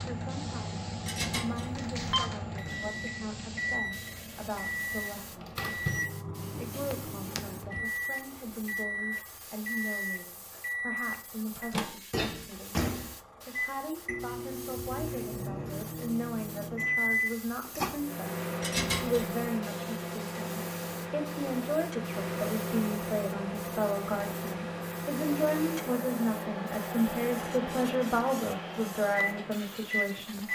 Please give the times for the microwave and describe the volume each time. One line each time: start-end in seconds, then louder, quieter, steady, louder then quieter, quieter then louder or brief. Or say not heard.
0.0-30.5 steady.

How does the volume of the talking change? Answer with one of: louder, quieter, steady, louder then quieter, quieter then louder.
louder.